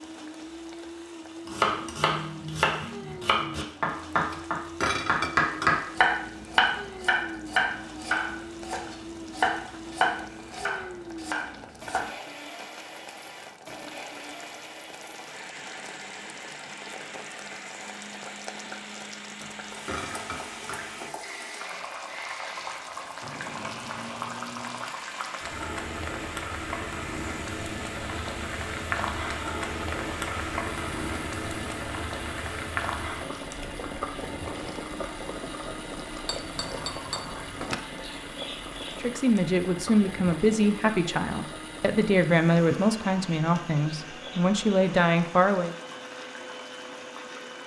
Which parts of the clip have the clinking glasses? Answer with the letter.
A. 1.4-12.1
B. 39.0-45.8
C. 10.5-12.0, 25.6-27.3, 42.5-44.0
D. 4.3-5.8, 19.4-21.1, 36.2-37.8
D.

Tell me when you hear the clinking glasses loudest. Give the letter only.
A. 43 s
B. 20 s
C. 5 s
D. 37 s
C.